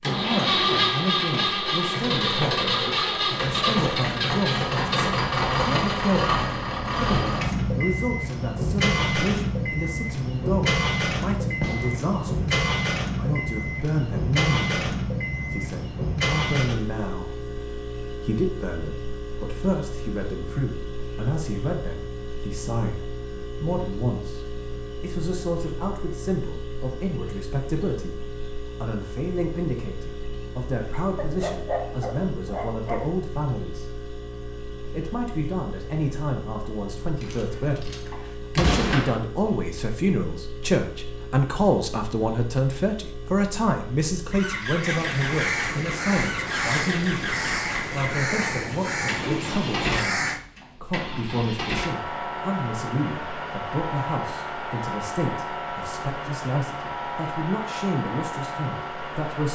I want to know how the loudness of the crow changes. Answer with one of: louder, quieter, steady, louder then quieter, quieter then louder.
steady.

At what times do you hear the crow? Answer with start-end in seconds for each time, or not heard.
44.8-50.4.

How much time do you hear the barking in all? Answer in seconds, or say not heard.
2 s.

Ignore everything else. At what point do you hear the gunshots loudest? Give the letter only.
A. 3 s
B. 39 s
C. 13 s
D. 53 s
B.